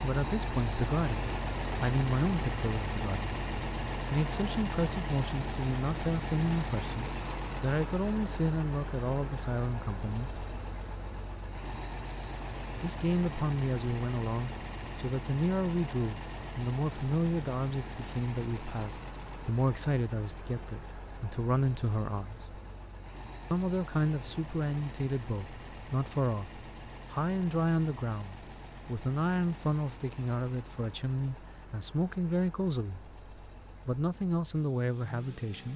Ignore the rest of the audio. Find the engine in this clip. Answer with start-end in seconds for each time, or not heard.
0.0-35.7.